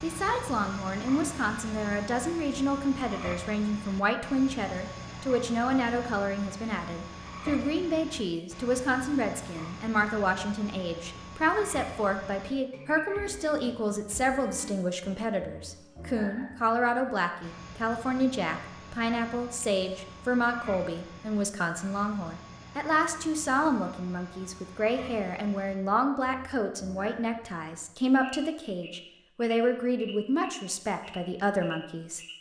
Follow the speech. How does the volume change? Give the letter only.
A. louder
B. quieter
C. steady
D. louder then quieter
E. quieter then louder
C.